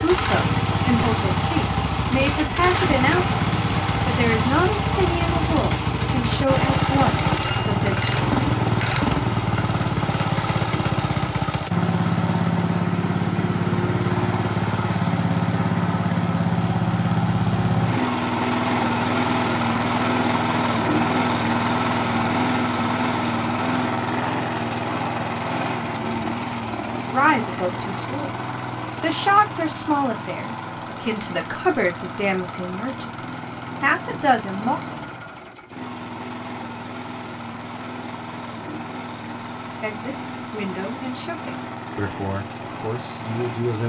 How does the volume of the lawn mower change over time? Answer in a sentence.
The volume of the lawn mower goes down.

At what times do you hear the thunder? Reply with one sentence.
You can't hear the thunder here.